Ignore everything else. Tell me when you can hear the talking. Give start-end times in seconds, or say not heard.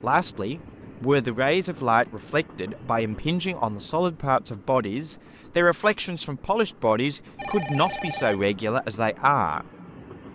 0.0-9.7.